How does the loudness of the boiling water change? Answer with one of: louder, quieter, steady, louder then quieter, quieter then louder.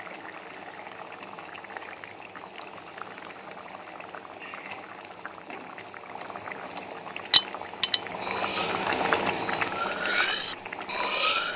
louder.